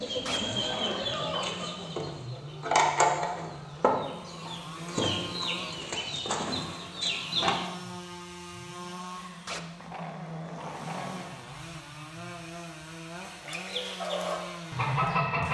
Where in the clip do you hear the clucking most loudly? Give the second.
3 s.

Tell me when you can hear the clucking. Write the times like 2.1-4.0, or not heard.
0.0-7.7, 13.2-15.4.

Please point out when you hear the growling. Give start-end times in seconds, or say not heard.
0.2-1.1, 9.4-11.4.